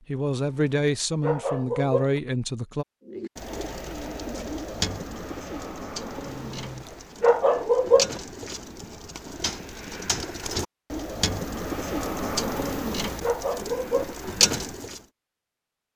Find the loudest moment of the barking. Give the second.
8 s.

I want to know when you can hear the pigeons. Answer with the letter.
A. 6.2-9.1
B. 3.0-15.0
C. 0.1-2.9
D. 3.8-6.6
B.